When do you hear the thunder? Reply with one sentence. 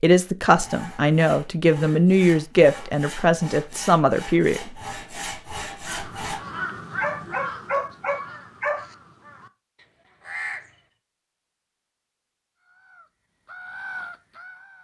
The thunder can't be heard in this clip.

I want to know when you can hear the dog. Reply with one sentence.
The dog can be heard from 7.0 to 8.9 s.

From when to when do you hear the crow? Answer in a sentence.
The crow can be heard from 5.8 to 10.8 s and from 12.6 to 14.7 s.